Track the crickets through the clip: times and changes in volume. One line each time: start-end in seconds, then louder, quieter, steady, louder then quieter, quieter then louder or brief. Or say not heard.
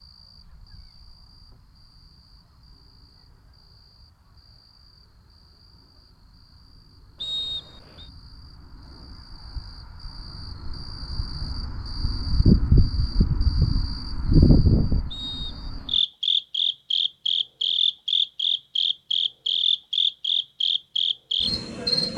0.0-22.1 louder.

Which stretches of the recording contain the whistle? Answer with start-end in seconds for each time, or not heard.
7.2-8.1, 15.1-16.1.